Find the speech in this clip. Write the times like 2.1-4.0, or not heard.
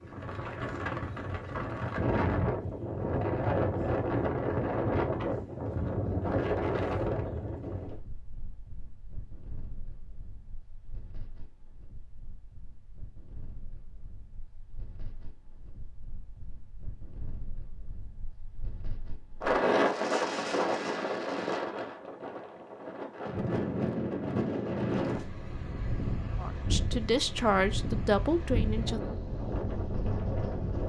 26.4-29.0.